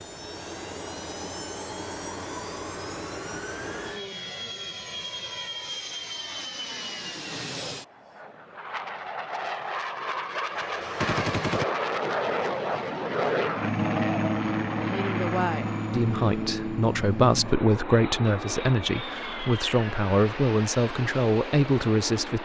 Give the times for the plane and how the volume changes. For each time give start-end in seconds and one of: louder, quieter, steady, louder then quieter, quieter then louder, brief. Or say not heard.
0.0-22.4 louder then quieter.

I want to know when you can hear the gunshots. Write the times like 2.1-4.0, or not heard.
10.6-11.7.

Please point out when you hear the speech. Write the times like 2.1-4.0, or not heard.
14.9-22.4.